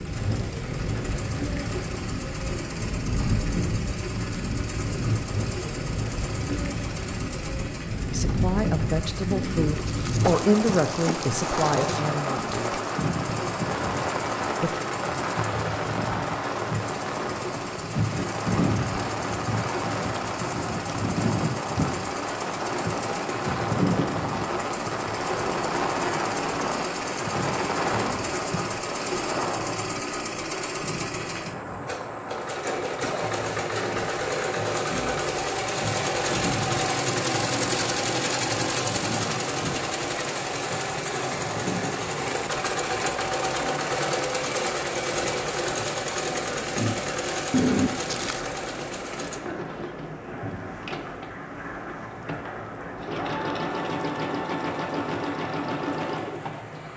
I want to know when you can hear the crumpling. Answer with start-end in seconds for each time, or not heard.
9.3-12.0, 47.5-48.4.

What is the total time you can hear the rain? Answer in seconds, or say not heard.
57 s.